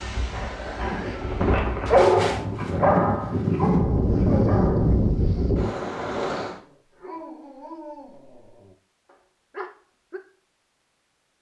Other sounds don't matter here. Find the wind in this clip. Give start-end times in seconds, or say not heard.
0.0-6.6.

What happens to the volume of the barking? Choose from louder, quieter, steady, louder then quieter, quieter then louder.
louder then quieter.